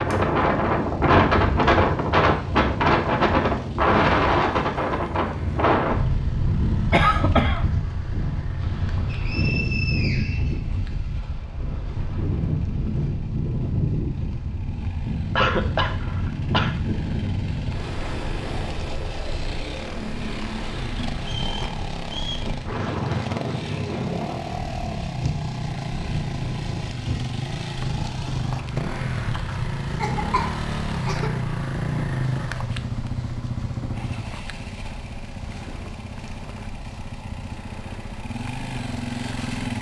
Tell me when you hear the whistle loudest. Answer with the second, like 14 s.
10 s.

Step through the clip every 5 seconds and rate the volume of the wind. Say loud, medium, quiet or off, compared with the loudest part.
loud, medium, medium, medium, quiet, quiet, quiet, quiet.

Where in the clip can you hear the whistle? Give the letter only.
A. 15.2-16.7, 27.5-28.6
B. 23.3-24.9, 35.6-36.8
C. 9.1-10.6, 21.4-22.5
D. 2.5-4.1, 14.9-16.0
C.